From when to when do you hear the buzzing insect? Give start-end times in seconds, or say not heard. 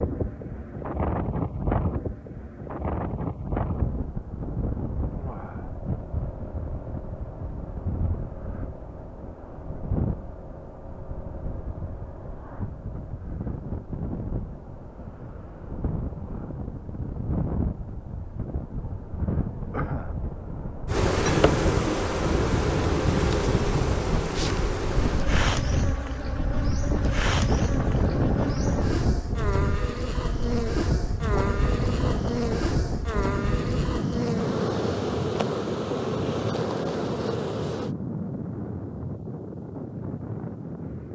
20.9-38.0.